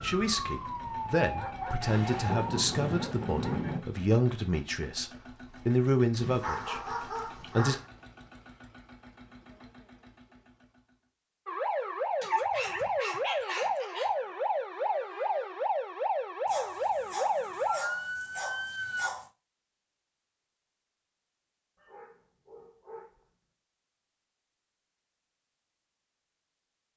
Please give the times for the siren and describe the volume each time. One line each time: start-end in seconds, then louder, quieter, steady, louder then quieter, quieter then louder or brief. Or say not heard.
0.0-2.7 brief
11.4-19.1 steady.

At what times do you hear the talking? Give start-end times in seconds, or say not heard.
0.0-7.8.